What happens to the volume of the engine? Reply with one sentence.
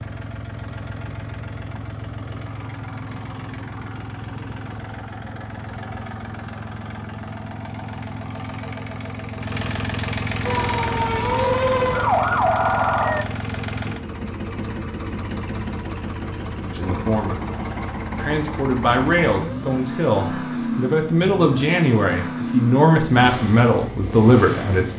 The loudness of the engine goes up.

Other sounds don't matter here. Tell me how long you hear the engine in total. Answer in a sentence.
The engine can be heard for 25 seconds in total.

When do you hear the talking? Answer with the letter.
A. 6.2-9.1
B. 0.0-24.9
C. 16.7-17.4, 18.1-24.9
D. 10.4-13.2
C.